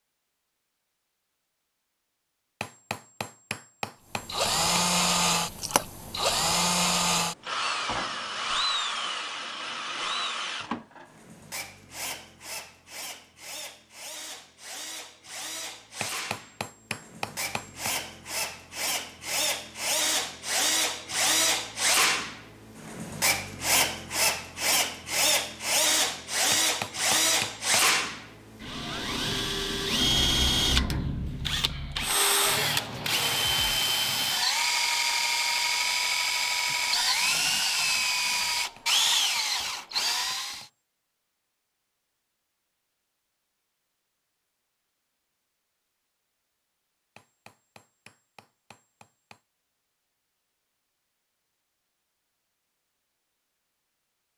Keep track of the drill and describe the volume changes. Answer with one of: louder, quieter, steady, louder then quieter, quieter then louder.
quieter then louder.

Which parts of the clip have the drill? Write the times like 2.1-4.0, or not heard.
4.2-40.6.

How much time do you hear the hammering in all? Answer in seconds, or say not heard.
10 s.